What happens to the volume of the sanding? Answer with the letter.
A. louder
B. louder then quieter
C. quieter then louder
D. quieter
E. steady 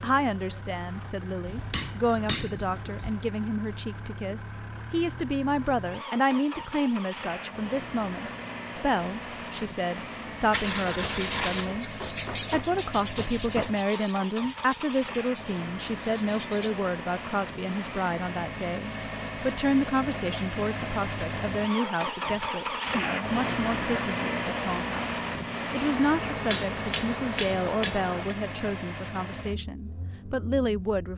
D.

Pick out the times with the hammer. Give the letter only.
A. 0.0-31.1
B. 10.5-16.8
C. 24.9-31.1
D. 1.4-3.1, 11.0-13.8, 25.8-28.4
D.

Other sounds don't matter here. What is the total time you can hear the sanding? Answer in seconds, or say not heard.
6 s.